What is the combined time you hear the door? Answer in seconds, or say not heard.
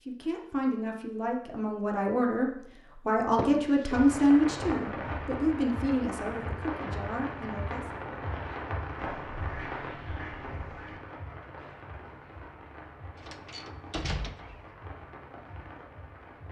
2 s.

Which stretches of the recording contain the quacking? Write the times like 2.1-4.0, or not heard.
8.9-11.0.